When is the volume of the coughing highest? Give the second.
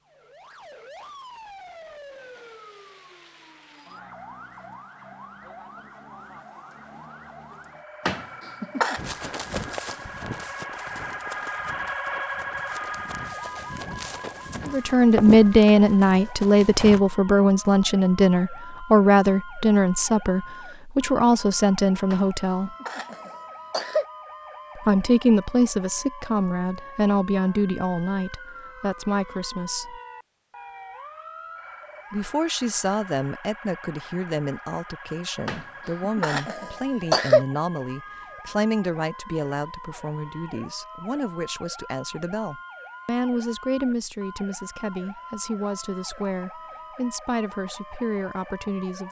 37 s.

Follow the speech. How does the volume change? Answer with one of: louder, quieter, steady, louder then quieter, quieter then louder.
quieter.